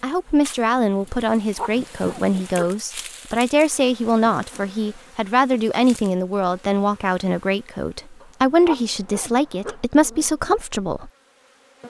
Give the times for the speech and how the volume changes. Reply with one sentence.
You can hear the speech from 0.0 to 11.1 s, at a steady volume.